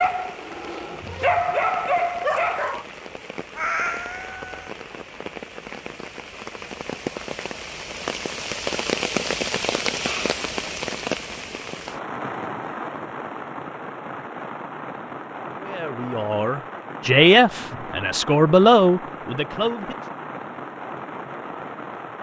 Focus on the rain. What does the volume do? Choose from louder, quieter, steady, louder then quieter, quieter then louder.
louder then quieter.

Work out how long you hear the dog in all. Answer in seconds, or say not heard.
3 s.